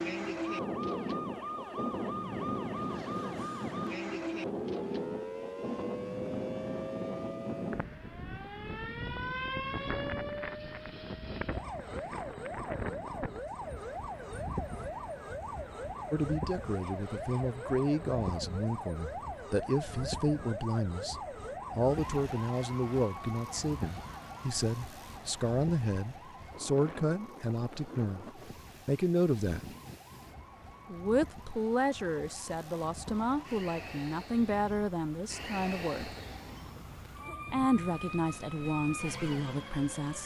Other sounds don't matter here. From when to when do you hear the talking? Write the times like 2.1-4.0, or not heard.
16.1-29.7, 30.9-36.1, 37.5-40.2.